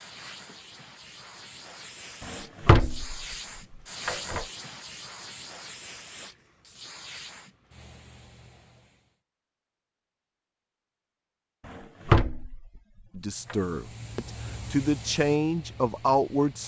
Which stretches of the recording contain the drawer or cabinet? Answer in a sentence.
You can hear the drawer or cabinet from 2.2 to 3.4 s, from 4.0 to 4.5 s and from 11.7 to 13.6 s.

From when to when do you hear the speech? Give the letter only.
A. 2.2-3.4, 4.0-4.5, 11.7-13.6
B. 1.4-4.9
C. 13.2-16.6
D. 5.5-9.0
C.